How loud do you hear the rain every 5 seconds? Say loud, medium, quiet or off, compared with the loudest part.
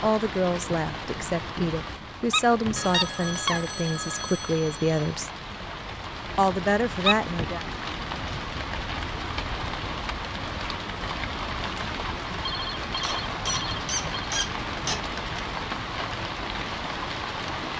medium, loud, loud, loud.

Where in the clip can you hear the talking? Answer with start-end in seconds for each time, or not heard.
0.0-5.3, 6.3-7.7.